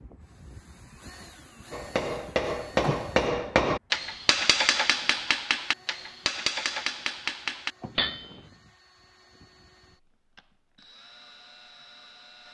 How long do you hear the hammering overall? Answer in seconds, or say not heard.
7 s.